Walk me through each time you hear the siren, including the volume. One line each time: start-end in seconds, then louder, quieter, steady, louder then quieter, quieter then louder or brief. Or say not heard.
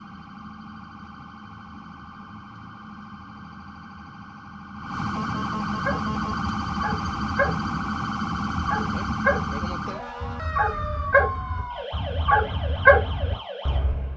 0.0-14.0 louder then quieter.